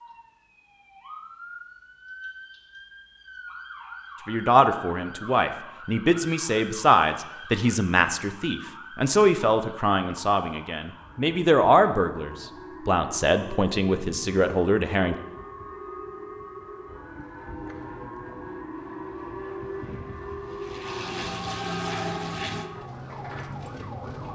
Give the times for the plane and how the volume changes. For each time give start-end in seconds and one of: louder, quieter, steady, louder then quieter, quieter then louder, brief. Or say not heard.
16.8-22.7 louder.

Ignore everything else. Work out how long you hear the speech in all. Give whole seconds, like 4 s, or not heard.
11 s.